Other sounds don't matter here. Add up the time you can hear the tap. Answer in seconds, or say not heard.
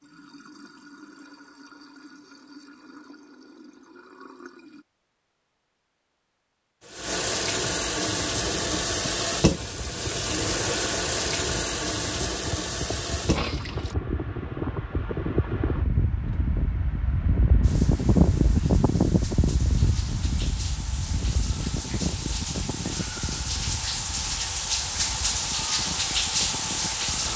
22 s.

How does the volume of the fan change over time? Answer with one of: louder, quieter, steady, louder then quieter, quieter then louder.
louder then quieter.